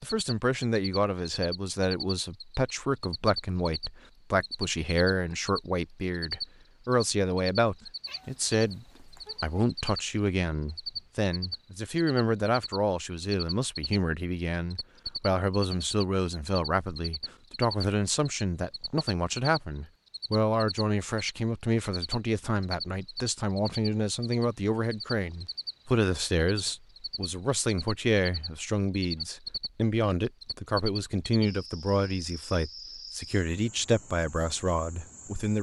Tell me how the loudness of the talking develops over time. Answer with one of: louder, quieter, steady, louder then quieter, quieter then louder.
steady.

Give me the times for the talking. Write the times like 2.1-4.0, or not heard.
0.0-35.5.